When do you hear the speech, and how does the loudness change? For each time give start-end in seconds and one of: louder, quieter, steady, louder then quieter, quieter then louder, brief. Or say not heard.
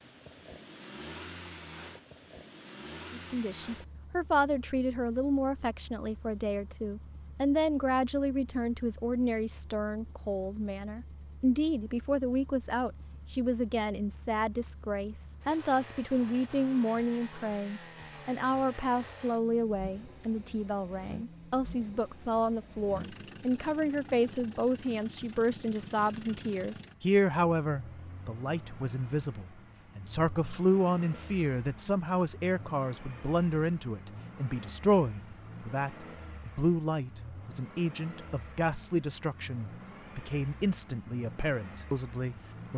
3.1-42.7 steady.